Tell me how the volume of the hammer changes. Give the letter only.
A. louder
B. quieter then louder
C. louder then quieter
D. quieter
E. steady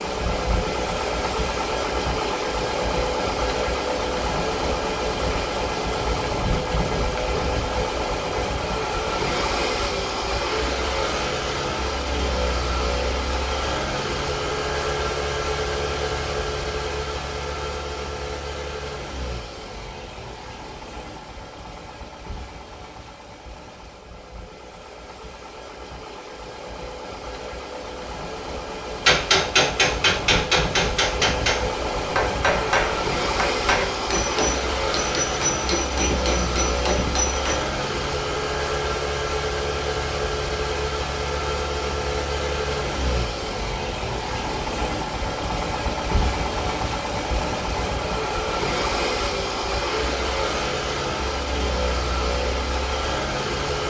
D.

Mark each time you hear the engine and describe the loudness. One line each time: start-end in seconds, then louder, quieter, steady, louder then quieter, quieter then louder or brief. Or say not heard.
0.0-53.8 quieter then louder.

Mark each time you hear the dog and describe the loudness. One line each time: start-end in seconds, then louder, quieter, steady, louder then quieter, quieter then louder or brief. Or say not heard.
not heard.